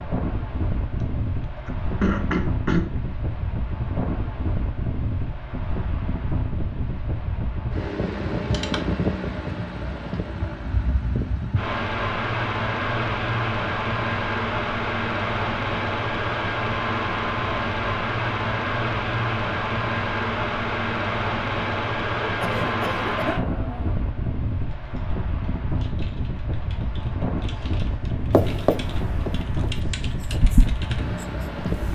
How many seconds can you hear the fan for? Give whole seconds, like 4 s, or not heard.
32 s.